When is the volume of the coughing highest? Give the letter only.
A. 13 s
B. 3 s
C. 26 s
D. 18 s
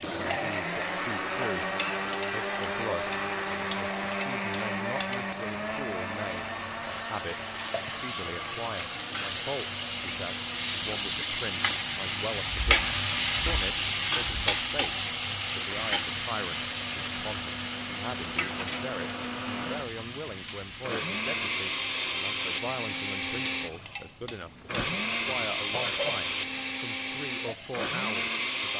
C.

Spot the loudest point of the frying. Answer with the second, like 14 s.
13 s.